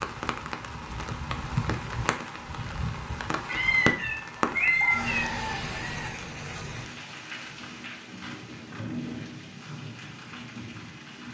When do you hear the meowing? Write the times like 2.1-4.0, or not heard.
3.5-5.2.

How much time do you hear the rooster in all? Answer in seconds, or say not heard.
2 s.